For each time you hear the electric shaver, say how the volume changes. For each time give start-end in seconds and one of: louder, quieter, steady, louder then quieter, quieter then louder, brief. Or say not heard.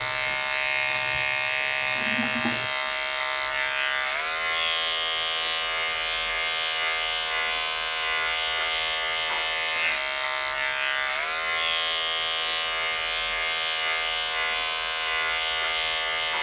0.0-16.3 steady.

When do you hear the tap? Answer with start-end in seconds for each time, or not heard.
0.0-2.7.